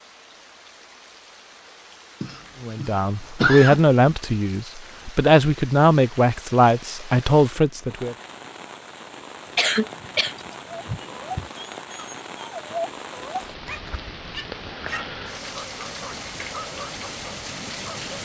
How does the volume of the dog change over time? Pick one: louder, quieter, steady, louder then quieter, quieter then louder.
louder then quieter.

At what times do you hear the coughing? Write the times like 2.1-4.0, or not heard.
2.2-3.8, 9.6-11.5.